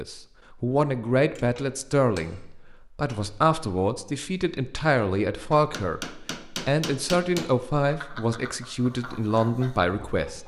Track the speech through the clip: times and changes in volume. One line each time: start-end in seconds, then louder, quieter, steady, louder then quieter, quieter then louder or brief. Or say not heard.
0.0-10.4 steady.